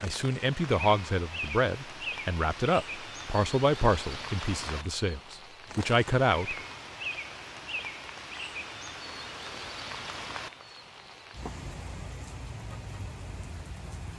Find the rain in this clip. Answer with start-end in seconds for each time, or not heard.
0.0-14.1.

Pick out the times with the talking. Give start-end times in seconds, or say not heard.
0.0-6.5.